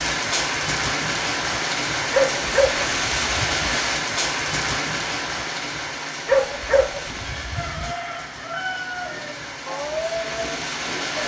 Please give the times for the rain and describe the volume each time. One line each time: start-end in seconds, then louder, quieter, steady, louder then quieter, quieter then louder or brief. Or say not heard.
0.0-11.2 quieter.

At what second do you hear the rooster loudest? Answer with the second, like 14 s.
9 s.